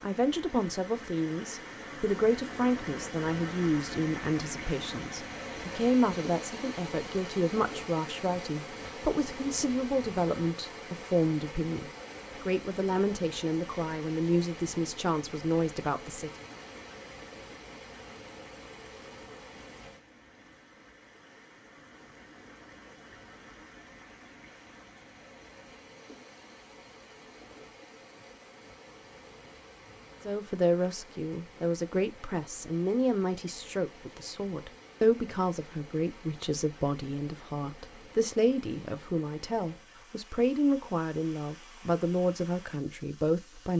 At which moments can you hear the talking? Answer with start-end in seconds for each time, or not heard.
0.0-16.3, 30.2-43.7.